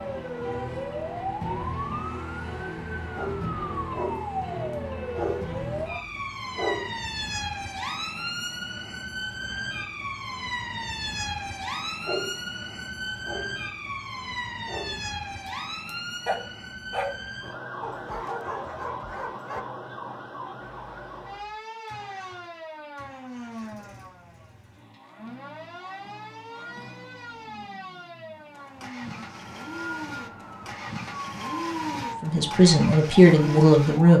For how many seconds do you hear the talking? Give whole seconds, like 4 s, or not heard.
2 s.